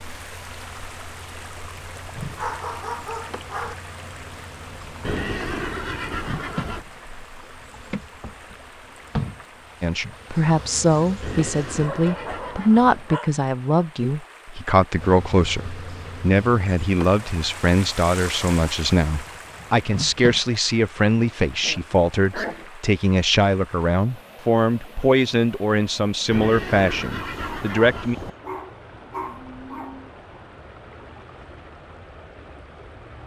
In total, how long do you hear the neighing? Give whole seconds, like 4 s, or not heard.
6 s.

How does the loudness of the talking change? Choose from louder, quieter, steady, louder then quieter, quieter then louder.
steady.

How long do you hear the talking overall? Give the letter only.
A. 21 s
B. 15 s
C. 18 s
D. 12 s
C.